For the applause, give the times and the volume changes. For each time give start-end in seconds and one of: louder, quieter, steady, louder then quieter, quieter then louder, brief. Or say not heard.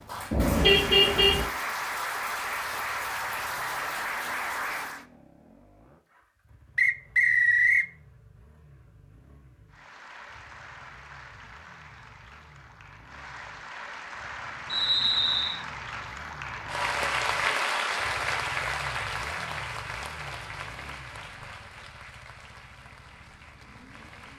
0.0-5.0 steady
9.7-24.3 louder then quieter.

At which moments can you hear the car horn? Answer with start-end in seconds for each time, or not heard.
0.3-1.4.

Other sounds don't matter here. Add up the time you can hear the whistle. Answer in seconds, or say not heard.
2 s.